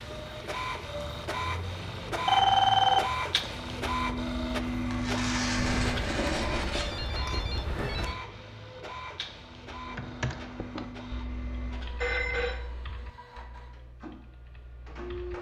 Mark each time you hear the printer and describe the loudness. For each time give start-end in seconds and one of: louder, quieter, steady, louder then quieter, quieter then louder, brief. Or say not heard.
0.0-15.3 quieter.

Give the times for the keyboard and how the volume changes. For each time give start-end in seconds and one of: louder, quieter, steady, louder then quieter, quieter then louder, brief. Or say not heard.
9.8-15.3 quieter.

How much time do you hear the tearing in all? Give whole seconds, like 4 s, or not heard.
2 s.